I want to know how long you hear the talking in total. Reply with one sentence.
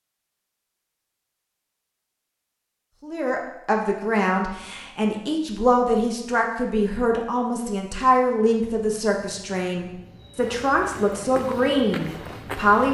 You can hear the talking for 10 seconds altogether.